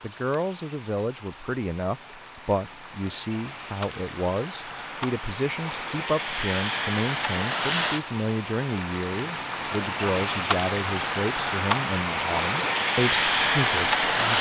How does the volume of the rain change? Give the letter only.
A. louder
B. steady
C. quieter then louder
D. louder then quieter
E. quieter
A.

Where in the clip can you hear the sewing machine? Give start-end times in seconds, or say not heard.
not heard.